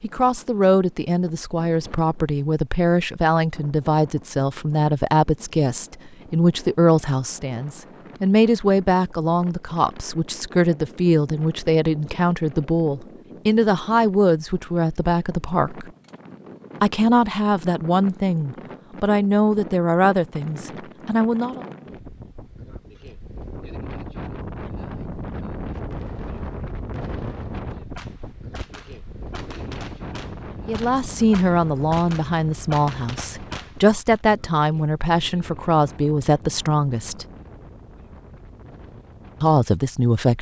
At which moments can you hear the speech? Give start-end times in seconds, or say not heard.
0.0-15.9, 16.8-21.6, 30.6-37.2, 39.4-40.3.